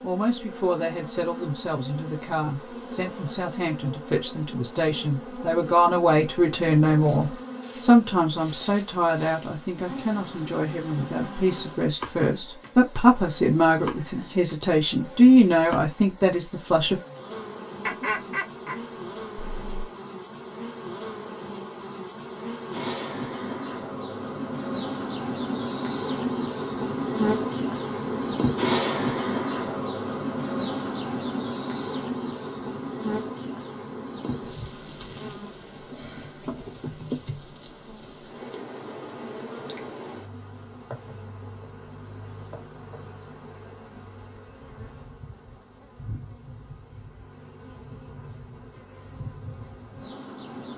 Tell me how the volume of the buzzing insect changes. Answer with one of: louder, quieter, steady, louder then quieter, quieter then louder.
louder then quieter.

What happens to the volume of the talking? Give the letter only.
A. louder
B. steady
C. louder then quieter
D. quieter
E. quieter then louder
A.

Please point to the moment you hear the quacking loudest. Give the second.
18 s.